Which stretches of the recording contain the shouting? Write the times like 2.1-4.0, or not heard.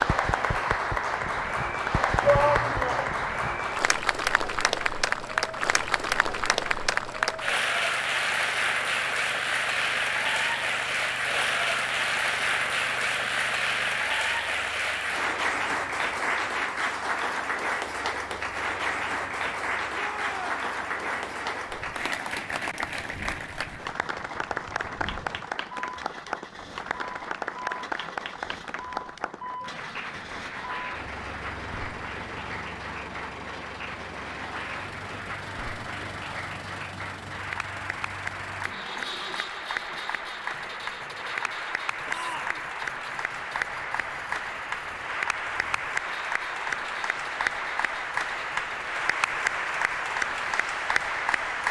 2.2-3.1, 19.9-20.6, 42.0-42.6.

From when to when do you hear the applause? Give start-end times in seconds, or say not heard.
0.0-51.6.